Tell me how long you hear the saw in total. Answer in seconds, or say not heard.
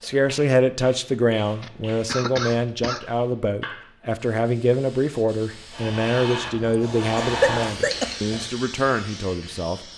not heard.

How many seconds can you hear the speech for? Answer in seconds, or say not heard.
10 s.